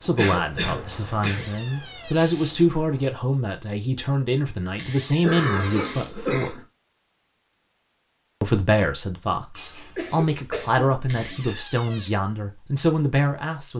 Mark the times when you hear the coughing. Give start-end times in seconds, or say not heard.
0.1-1.4, 5.2-6.6, 9.6-11.6.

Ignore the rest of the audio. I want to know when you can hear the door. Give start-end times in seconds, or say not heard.
1.2-2.6, 4.8-6.2, 11.1-12.2.